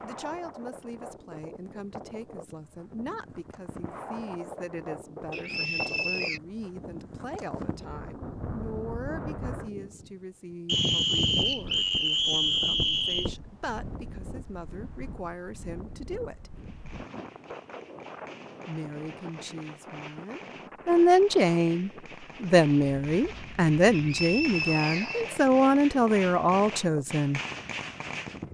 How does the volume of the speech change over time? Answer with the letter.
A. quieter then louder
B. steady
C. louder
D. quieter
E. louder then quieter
C.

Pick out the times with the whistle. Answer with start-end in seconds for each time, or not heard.
5.3-6.4, 10.7-13.3, 23.9-25.4.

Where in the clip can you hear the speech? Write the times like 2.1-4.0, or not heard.
0.0-16.5, 18.6-27.4.